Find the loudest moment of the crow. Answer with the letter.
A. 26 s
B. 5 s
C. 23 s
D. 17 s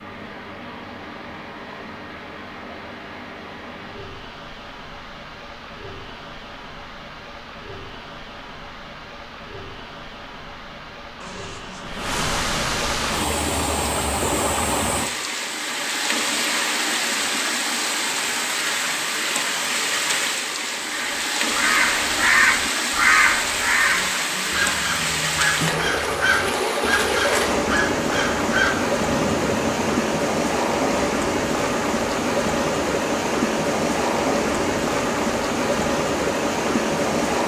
C.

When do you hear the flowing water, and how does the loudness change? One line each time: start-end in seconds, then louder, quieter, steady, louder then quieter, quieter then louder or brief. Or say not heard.
0.0-37.4 louder.